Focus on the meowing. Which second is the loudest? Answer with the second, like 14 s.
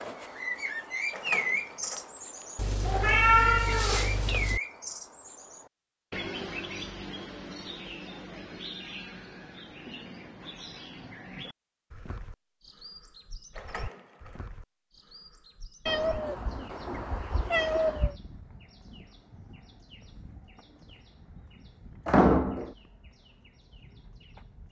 3 s.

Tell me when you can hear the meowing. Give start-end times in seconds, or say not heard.
2.5-4.6, 15.8-18.1.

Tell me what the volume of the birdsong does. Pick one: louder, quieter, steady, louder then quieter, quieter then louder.
quieter.